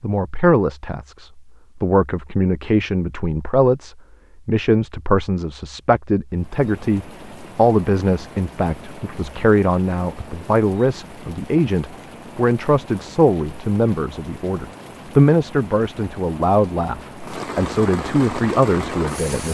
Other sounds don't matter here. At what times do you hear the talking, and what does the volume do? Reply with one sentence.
The talking can be heard from 0.0 to 19.4 s, at a steady volume.